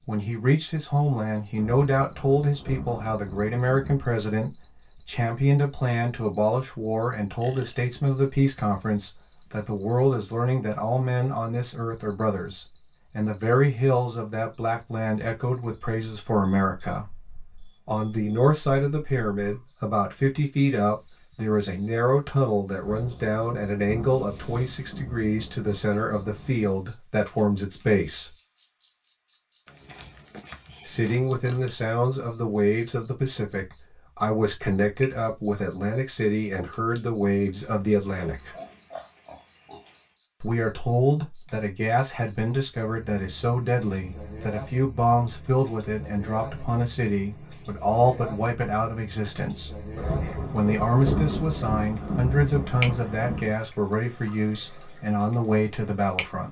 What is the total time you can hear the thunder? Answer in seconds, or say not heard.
10 s.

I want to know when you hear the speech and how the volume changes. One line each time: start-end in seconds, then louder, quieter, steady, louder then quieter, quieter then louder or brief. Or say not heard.
0.1-17.1 steady
17.9-28.3 steady
30.9-38.5 steady
40.4-56.4 steady.